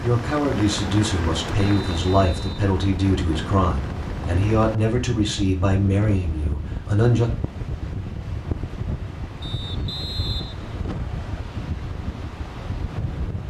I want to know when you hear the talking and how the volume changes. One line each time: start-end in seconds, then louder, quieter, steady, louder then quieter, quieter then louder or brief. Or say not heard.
0.0-7.3 steady.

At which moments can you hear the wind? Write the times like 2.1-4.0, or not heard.
0.0-13.4.